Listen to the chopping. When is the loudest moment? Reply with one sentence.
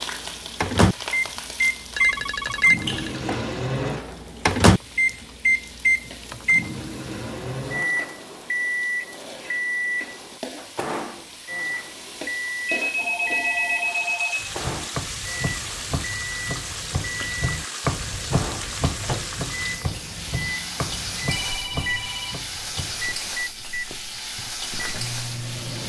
The loudest moment of the chopping is at 18 seconds.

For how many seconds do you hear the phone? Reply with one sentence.
The phone can be heard for 4 seconds in total.